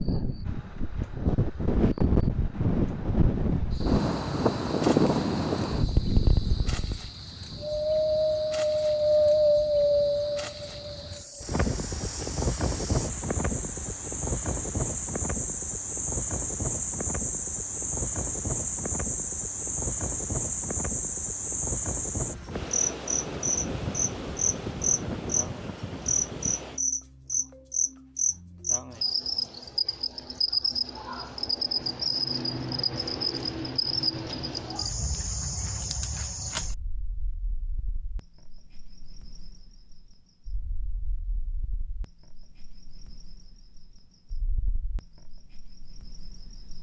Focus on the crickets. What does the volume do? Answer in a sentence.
The volume of the crickets goes up, then down.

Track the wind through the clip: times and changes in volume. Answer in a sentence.
The wind can be heard from 0.0 to 26.8 s, getting quieter.